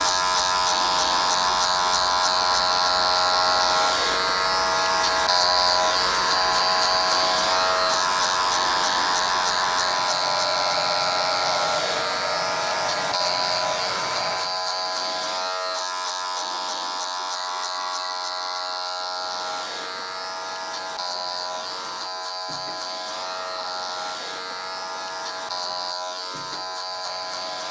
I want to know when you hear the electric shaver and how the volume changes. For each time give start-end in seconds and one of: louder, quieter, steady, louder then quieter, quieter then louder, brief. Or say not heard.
0.0-27.6 quieter.